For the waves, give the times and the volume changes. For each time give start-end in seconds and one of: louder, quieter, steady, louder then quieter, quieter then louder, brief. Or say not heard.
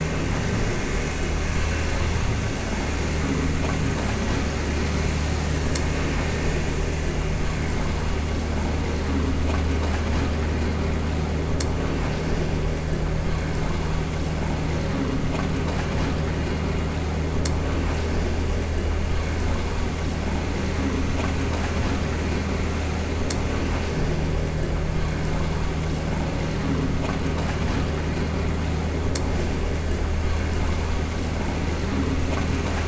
0.0-32.8 steady.